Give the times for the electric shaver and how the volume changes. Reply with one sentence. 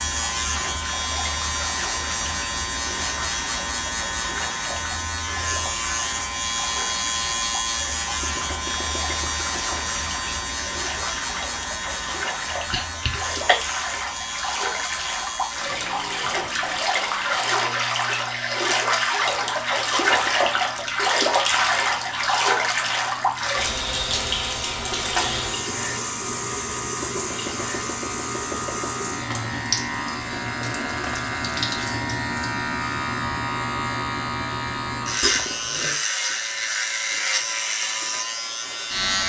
The electric shaver can be heard from 0.0 to 39.2 s, getting quieter then louder.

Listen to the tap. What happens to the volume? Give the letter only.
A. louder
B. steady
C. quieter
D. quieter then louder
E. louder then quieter
E.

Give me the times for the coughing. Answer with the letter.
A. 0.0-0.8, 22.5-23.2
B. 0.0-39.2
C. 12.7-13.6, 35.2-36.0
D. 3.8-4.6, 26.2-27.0
C.